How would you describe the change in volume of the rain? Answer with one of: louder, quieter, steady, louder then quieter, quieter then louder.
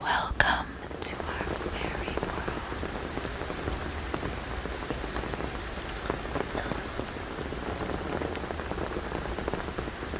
steady.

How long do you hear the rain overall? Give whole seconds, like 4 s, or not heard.
10 s.